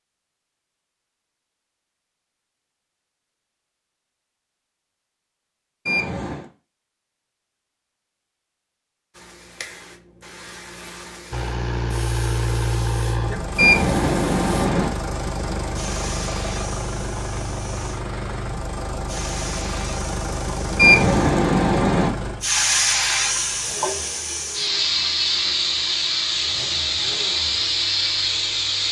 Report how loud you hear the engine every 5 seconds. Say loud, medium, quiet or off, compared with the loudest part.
off, off, loud, loud, medium, quiet.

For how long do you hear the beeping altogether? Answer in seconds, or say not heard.
3 s.